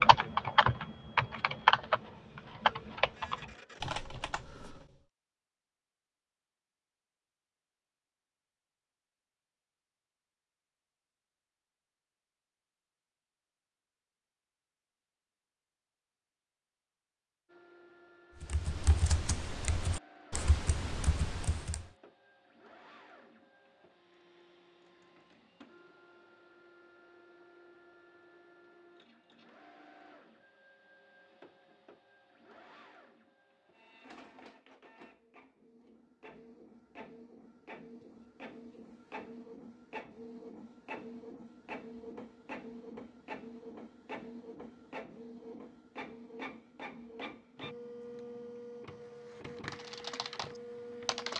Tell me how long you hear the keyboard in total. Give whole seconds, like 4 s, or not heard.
10 s.